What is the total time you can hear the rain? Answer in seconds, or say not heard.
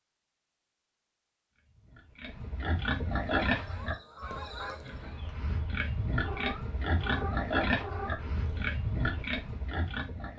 not heard.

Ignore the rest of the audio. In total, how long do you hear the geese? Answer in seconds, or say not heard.
2 s.